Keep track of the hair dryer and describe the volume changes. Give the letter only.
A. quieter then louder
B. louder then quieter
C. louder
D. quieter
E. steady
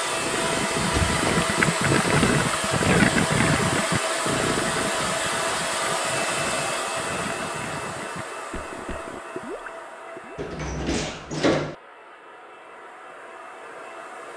D.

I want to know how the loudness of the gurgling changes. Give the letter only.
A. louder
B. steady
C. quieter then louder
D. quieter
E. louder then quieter
D.